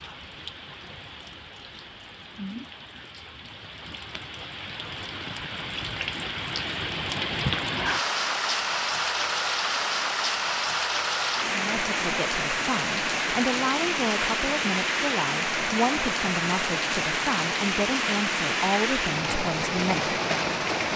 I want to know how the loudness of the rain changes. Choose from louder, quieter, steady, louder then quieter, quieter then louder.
louder.